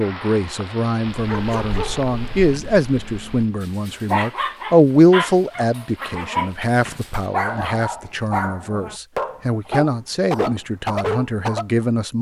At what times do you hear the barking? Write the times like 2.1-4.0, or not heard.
1.1-11.8.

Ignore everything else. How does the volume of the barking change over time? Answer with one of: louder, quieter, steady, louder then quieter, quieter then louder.
louder.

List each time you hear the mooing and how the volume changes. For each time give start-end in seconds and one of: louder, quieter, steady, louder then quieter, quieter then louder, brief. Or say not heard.
not heard.